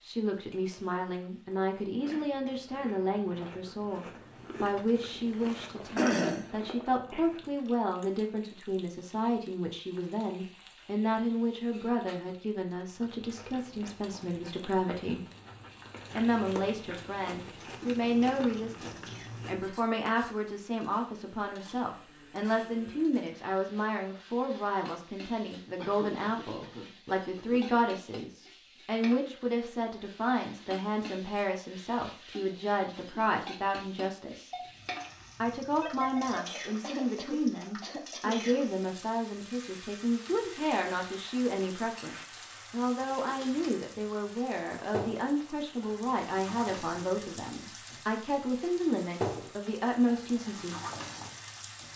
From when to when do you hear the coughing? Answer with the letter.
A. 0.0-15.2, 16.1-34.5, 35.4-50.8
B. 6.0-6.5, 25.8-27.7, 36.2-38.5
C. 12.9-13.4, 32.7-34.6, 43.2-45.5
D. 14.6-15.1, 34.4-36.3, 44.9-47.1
B.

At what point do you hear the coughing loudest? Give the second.
6 s.